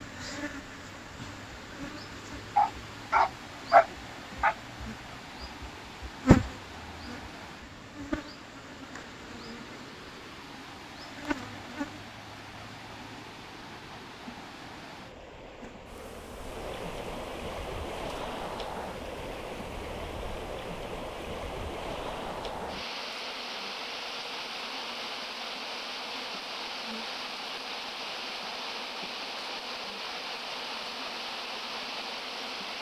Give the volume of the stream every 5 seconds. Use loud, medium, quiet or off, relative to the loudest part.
medium, medium, medium, loud, loud, loud, loud.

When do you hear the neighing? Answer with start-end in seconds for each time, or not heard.
not heard.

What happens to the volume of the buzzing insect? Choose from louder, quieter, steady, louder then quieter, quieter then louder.
quieter.